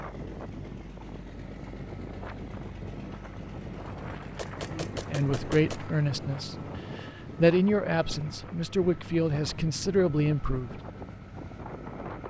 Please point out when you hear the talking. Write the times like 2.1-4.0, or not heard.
4.7-10.8.